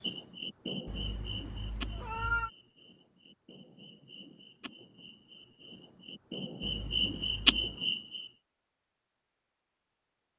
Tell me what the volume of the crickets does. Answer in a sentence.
The loudness of the crickets goes down, then up.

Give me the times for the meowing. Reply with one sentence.
The meowing can be heard from 0.8 to 2.5 s and from 6.6 to 7.8 s.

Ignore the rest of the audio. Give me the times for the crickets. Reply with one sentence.
The crickets can be heard from 0.0 to 8.3 s.